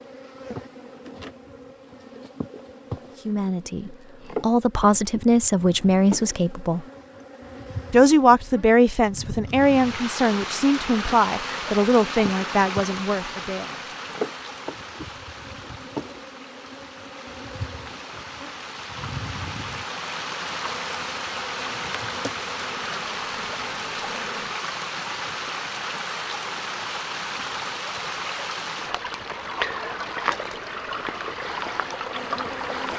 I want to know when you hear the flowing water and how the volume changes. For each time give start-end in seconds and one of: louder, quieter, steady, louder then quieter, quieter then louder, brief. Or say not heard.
9.5-32.9 quieter then louder.